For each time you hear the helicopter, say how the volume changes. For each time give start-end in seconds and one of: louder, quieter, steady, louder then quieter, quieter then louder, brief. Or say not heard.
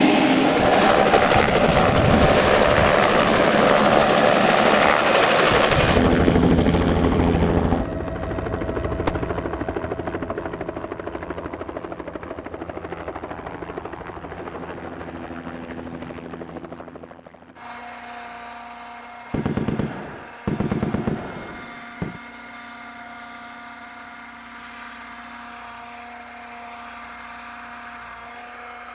0.0-28.8 quieter.